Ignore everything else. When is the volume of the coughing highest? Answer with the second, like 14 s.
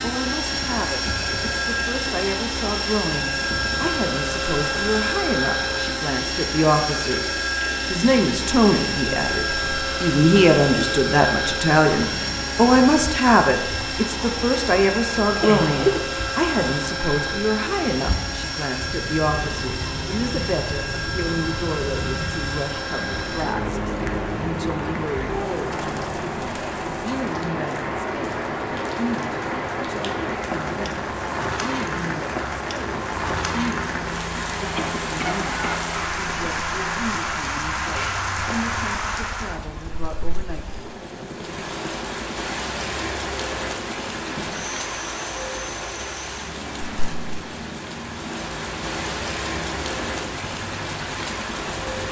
16 s.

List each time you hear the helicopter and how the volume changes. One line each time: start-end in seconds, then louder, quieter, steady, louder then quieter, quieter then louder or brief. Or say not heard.
0.0-52.0 quieter.